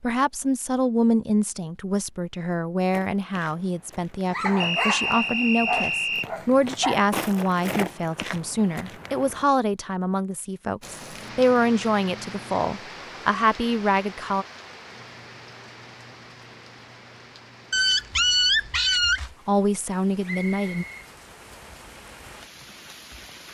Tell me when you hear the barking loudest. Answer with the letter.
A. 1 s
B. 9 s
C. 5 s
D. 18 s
D.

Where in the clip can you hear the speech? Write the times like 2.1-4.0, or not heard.
0.0-14.4, 19.4-20.9.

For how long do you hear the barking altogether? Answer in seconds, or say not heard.
4 s.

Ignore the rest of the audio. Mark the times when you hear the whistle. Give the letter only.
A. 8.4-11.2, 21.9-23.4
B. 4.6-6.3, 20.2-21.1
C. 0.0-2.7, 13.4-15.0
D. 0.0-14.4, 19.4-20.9
B.